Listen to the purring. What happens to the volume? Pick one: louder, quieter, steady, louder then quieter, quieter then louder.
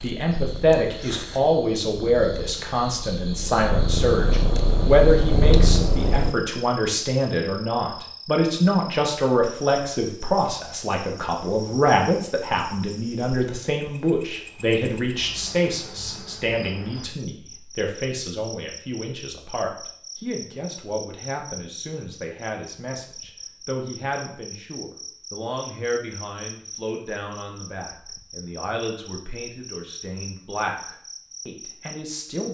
louder.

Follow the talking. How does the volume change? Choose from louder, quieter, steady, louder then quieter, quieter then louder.
quieter.